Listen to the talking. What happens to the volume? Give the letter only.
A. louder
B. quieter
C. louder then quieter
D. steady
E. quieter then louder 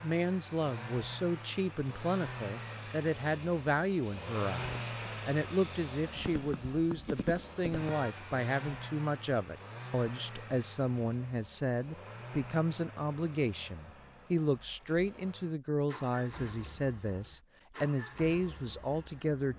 D.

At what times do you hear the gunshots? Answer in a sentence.
The gunshots can be heard from 6.2 to 8.1 s.